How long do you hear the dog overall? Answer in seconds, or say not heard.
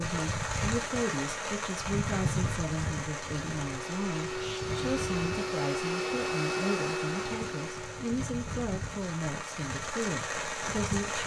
not heard.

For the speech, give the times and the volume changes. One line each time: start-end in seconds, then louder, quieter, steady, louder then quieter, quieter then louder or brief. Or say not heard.
0.0-11.2 steady.